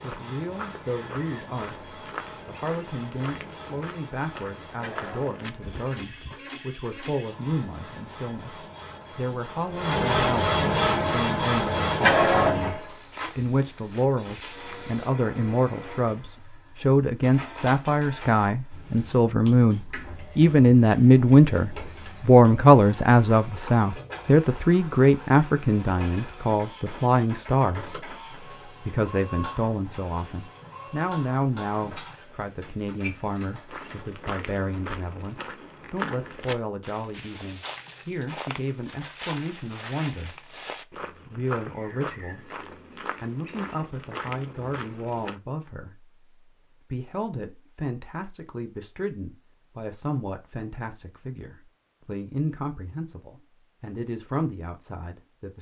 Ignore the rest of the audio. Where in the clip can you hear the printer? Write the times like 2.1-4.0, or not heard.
0.0-34.9.